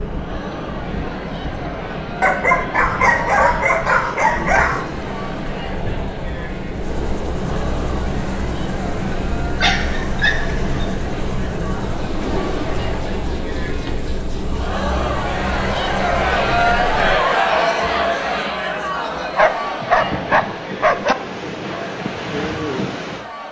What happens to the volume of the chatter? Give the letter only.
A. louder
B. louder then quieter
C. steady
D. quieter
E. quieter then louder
B.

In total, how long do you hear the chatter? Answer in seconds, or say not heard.
23 s.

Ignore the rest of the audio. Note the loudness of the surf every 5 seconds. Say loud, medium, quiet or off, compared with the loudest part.
loud, loud, loud, medium, loud.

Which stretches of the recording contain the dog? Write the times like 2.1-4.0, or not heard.
2.2-5.1, 9.6-10.8, 19.4-21.1.